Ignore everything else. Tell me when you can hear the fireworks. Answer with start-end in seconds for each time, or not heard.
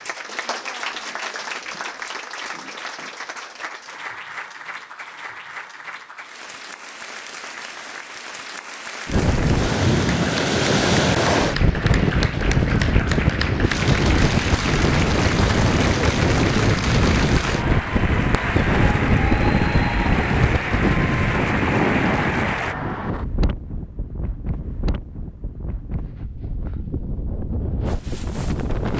not heard.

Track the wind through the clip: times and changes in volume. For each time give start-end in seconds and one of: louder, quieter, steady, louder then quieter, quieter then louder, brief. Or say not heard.
9.1-28.9 quieter.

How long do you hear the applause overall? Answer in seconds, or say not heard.
23 s.